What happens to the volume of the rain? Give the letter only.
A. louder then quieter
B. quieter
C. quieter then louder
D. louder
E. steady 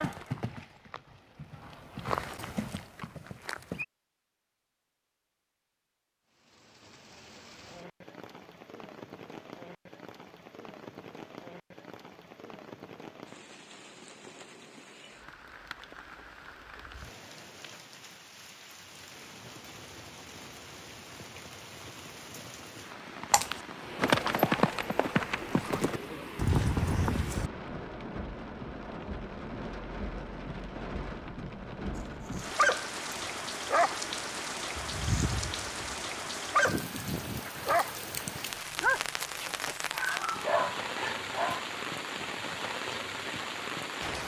D.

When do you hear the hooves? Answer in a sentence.
The hooves can be heard from 0.0 to 3.9 s and from 23.3 to 27.5 s.